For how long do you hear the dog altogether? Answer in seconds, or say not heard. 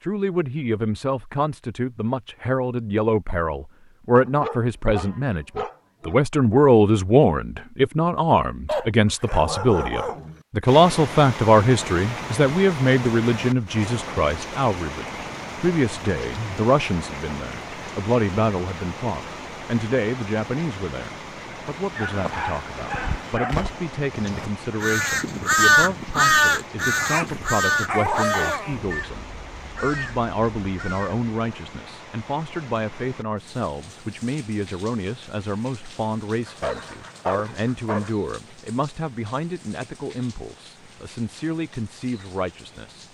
9 s.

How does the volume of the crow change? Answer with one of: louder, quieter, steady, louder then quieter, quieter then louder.
quieter.